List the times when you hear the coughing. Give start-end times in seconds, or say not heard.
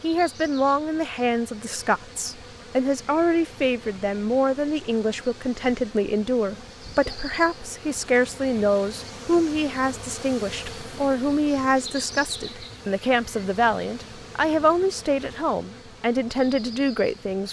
6.5-7.2.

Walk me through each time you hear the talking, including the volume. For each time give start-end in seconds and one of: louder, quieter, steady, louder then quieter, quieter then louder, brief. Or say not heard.
0.0-17.4 steady.